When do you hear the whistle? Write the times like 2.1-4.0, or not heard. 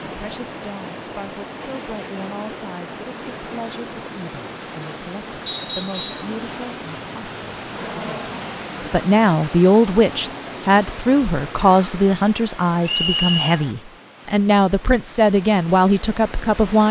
5.5-6.3, 12.8-13.6.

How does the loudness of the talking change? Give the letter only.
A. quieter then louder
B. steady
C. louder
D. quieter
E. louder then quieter
C.